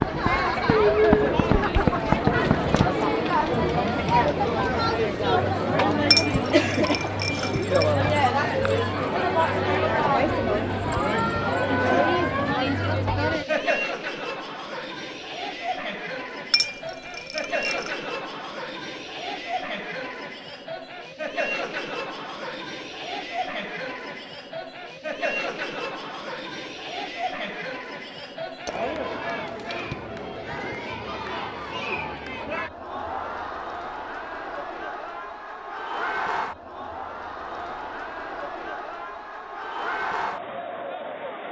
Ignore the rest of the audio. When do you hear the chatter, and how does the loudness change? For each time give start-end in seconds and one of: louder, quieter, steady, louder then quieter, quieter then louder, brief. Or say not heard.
0.0-41.4 quieter.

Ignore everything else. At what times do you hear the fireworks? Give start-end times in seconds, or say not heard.
0.0-2.9.